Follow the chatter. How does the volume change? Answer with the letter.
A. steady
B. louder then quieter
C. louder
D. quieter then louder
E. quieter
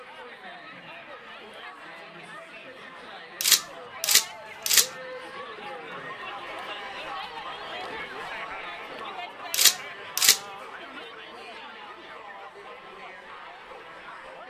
B.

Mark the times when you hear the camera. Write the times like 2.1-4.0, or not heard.
3.4-4.9, 9.5-10.4.